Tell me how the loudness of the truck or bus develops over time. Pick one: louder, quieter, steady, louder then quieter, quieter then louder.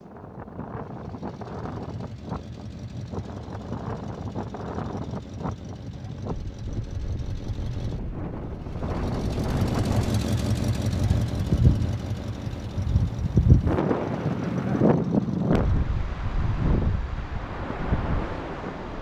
louder then quieter.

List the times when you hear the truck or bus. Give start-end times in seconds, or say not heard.
0.0-18.9.